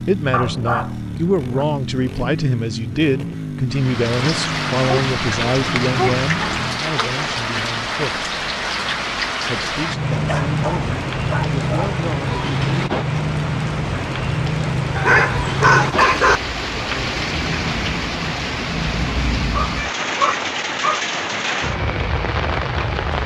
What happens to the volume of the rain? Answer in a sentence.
The loudness of the rain stays about the same.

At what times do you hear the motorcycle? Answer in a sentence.
The motorcycle can be heard from 0.0 to 6.8 s.